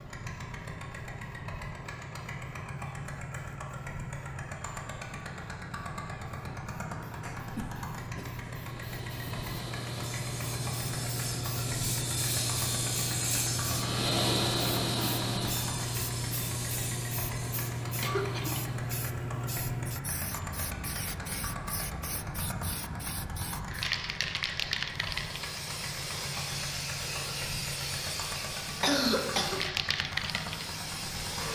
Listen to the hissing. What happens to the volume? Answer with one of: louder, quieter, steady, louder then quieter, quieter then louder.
louder.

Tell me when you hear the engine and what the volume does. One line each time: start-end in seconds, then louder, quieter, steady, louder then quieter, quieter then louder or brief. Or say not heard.
0.0-31.5 steady.